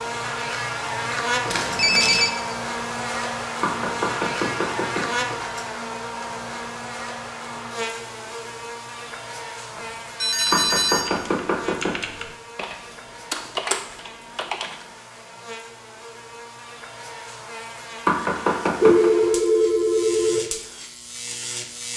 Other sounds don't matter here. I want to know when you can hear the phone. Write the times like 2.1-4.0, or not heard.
1.4-2.3, 9.8-11.1, 18.8-20.4.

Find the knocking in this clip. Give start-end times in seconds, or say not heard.
3.6-5.2, 10.5-12.1, 18.1-19.1.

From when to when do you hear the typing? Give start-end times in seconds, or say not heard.
10.3-14.8.